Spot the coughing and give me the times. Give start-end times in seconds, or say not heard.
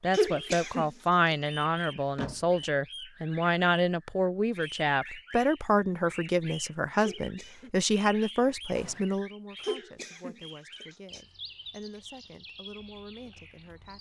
0.1-0.9, 7.0-7.7, 9.6-11.2.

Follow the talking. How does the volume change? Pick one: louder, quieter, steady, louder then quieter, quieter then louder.
quieter.